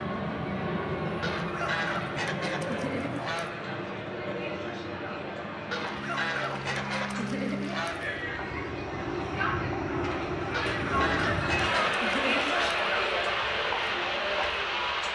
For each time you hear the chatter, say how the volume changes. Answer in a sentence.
You can hear the chatter from 0.0 to 15.1 s, getting louder.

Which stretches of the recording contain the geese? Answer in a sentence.
You can hear the geese from 1.2 to 3.5 s, from 5.7 to 8.2 s and from 10.5 to 12.8 s.